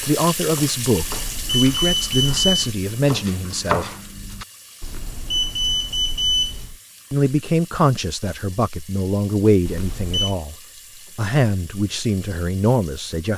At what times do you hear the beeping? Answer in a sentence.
You can hear the beeping from 1.0 to 2.7 s, from 4.8 to 6.8 s and from 9.7 to 10.3 s.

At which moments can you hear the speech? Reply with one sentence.
You can hear the speech from 0.0 to 3.9 s, from 7.1 to 10.6 s and from 11.2 to 13.3 s.